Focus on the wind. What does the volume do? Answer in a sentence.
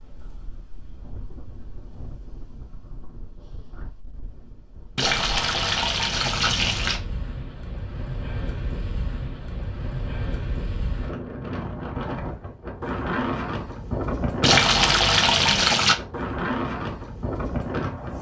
The loudness of the wind goes up.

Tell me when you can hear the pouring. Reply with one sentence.
You can hear the pouring from 5.0 to 7.0 s and from 14.4 to 15.9 s.